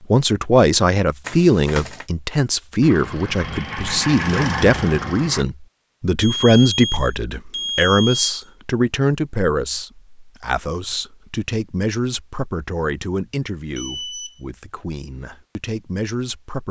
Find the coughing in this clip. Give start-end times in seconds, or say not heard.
not heard.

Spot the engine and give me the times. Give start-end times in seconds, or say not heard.
2.8-5.5.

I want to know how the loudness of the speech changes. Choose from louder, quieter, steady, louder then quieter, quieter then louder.
quieter.